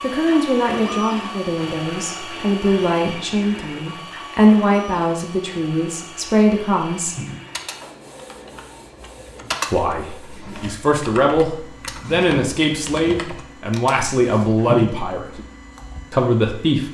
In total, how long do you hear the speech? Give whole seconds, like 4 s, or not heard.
14 s.